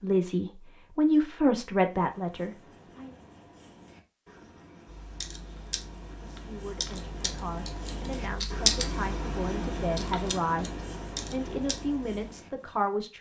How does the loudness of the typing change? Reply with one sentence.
The loudness of the typing goes up, then down.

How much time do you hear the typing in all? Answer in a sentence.
You can hear the typing for 7 seconds altogether.